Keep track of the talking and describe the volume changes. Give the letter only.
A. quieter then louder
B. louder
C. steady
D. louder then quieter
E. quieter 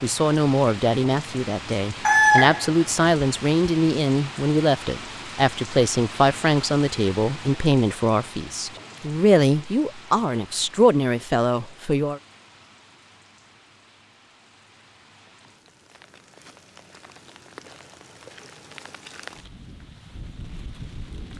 C.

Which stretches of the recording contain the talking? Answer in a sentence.
The talking can be heard from 0.0 to 12.2 s.